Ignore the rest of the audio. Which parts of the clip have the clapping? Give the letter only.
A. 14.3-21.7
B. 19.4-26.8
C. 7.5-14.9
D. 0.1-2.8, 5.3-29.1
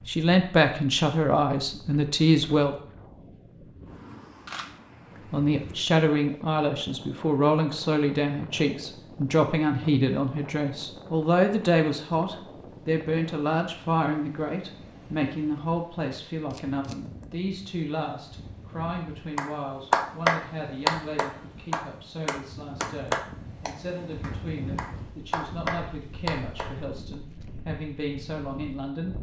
B.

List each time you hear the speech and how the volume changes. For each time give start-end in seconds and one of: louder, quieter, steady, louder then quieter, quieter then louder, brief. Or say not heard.
0.1-2.8 brief
5.3-29.1 quieter.